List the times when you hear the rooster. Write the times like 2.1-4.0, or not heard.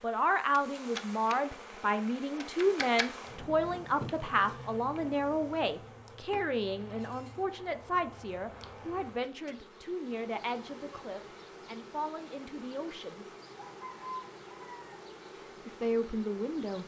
13.6-15.0.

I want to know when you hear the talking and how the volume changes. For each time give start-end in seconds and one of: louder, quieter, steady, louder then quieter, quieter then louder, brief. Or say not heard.
0.0-13.2 quieter
15.7-16.8 brief.